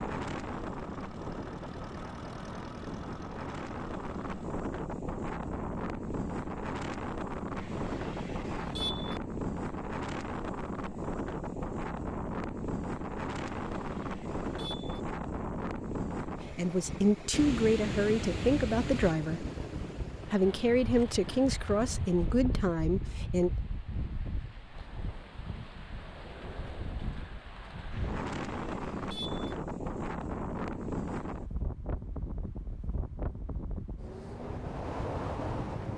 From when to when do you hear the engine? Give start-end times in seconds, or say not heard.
0.0-4.5.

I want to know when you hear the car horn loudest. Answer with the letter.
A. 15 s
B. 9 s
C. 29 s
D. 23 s
B.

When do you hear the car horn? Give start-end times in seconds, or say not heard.
7.5-9.2, 13.6-15.0, 27.9-29.6.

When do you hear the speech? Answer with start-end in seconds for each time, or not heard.
16.4-19.4, 20.2-23.5.